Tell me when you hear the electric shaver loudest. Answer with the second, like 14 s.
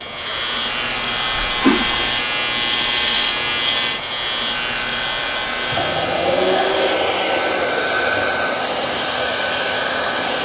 3 s.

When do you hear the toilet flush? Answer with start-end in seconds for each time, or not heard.
1.4-2.1, 5.7-8.3.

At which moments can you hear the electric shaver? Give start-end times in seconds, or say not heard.
0.0-7.0.